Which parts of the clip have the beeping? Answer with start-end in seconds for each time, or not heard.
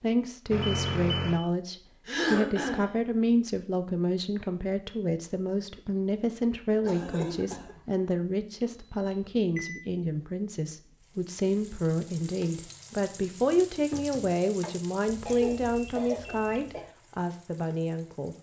0.5-1.4, 8.7-9.8, 15.1-16.9.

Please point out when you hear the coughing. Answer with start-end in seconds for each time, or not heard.
2.0-2.9, 6.8-7.8, 15.2-16.8.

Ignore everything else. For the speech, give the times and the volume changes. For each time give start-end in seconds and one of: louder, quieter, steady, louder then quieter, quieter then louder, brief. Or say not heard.
0.0-18.3 steady.